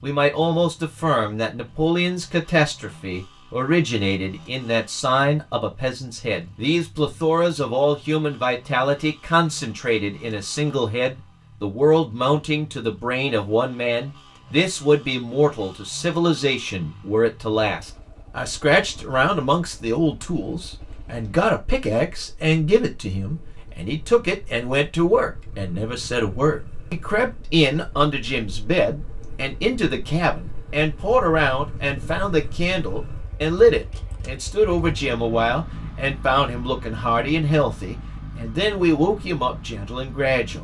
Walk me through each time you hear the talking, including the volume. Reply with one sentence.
The talking can be heard from 0.0 to 40.5 s, at a steady volume.